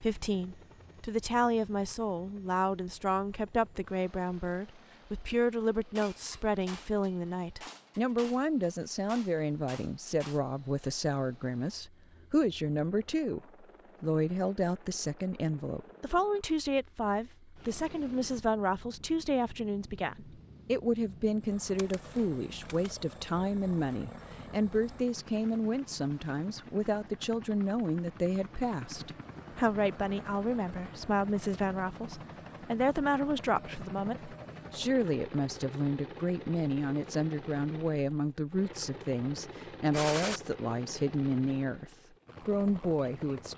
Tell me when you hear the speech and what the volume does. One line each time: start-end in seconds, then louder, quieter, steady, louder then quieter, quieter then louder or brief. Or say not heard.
0.0-43.5 steady.